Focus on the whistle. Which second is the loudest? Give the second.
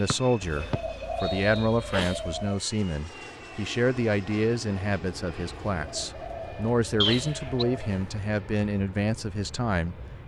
7 s.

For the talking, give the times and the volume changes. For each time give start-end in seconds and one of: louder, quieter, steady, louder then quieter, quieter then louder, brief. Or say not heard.
0.0-10.0 steady.